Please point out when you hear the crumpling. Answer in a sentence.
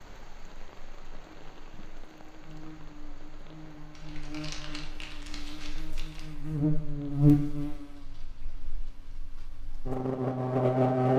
You can hear the crumpling from 3.9 to 6.4 s.